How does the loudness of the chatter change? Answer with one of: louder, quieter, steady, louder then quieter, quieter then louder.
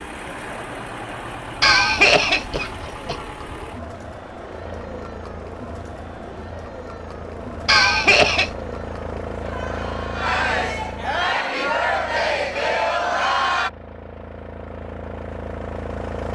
louder.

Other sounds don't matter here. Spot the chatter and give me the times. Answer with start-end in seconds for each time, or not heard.
0.0-13.7.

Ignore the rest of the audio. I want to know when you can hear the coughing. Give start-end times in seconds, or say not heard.
1.6-3.1, 7.7-8.5, 12.2-12.8.